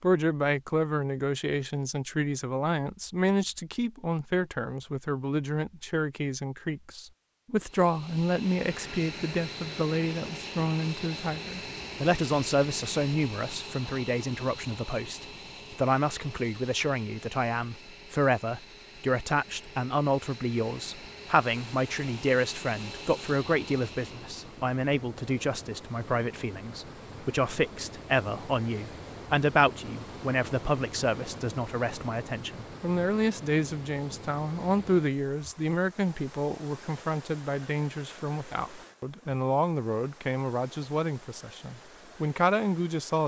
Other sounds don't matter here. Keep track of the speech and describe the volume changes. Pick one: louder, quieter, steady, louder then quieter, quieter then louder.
steady.